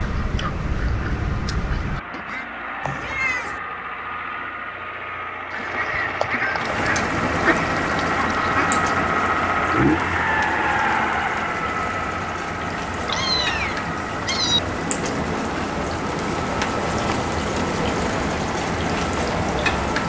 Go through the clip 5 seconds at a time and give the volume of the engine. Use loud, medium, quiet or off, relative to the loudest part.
medium, loud, loud, medium.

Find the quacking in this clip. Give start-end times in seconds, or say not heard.
0.0-2.5, 5.5-8.8.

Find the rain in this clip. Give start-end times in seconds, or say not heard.
6.5-20.0.